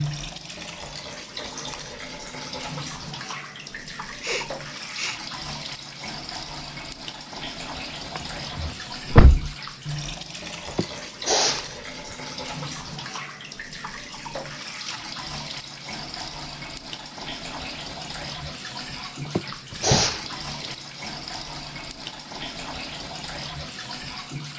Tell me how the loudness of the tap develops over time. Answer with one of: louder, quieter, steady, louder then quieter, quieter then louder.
steady.